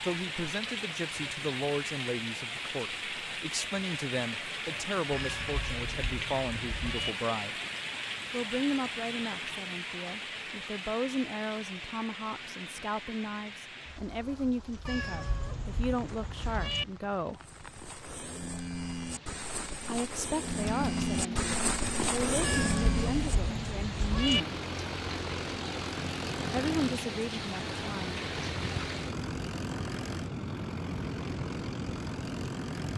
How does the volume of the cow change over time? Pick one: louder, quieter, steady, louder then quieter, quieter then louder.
louder.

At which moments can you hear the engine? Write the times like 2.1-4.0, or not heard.
20.4-32.9.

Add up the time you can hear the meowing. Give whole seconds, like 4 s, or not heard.
6 s.